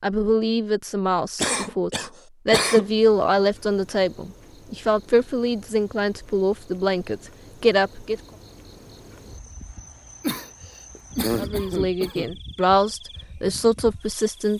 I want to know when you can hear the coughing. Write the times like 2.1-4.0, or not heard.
1.4-3.0, 10.2-12.3.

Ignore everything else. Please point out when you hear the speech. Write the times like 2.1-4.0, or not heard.
0.0-8.2, 11.3-14.5.